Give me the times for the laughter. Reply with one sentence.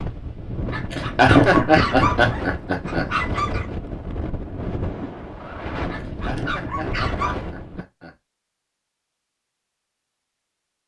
The laughter can be heard from 0.9 to 3.0 s and from 6.0 to 8.2 s.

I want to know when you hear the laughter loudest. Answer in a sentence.
The loudest moment of the laughter is at 1 second.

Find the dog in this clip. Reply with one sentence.
You can hear the dog from 0.7 to 3.6 s and from 5.9 to 7.5 s.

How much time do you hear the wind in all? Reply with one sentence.
The wind can be heard for 8 seconds in total.